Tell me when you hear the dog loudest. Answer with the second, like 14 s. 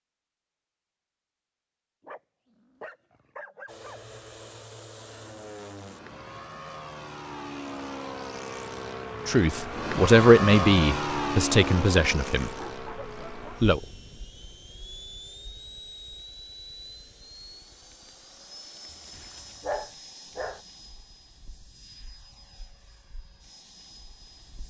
20 s.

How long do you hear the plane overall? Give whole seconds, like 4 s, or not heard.
21 s.